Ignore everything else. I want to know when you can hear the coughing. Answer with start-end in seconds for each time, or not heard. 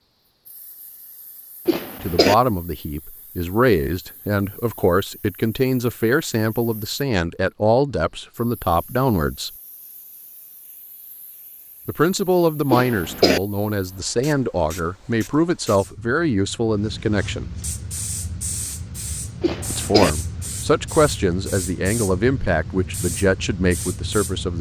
1.6-2.4, 12.7-13.4, 19.4-20.1.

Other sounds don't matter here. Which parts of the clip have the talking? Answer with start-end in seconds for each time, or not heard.
2.0-9.5, 11.8-17.5, 19.7-24.5.